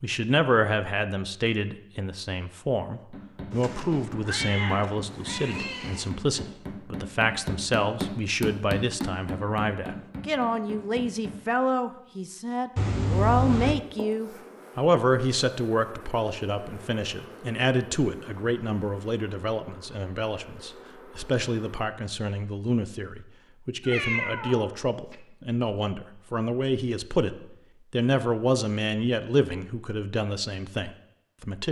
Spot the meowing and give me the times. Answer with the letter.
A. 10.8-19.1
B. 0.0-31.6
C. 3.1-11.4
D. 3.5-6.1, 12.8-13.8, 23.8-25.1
D.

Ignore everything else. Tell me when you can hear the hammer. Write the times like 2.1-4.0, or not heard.
3.1-11.4.